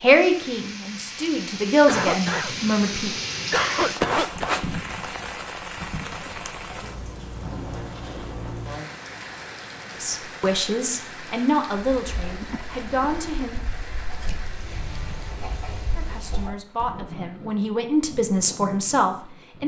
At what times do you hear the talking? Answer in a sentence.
The talking can be heard from 0.0 to 3.1 s, from 10.0 to 13.6 s and from 15.9 to 19.6 s.